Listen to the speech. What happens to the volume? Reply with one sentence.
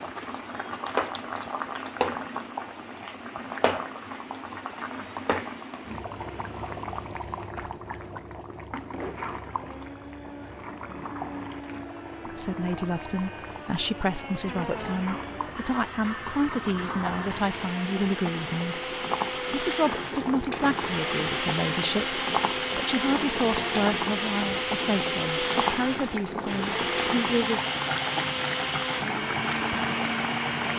The volume of the speech stays about the same.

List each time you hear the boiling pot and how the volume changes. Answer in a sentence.
The boiling pot can be heard from 0.0 to 30.7 s, getting quieter then louder.